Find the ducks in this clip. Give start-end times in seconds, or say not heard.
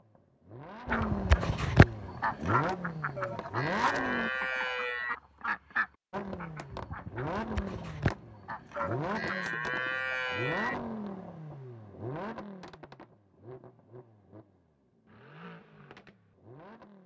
0.8-9.3.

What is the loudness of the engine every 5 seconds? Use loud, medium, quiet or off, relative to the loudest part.
loud, loud, medium, quiet.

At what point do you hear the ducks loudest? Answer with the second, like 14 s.
2 s.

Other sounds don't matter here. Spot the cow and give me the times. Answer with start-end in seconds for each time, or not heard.
3.1-5.2, 8.8-10.8.